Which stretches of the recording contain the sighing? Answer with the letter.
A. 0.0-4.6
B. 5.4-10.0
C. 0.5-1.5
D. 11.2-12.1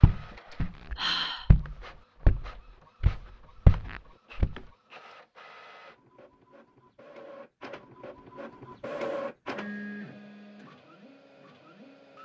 C.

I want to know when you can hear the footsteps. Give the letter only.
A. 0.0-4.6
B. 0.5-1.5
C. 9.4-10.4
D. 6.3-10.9
A.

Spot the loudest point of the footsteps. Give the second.
4 s.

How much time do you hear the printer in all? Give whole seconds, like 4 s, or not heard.
12 s.